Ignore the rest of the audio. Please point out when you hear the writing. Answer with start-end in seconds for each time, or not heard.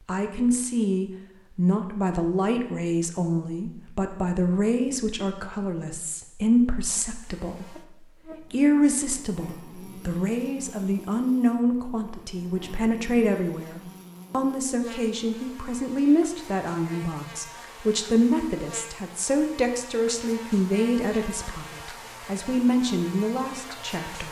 not heard.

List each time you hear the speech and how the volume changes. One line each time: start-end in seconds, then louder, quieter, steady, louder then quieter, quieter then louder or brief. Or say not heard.
0.1-24.2 steady.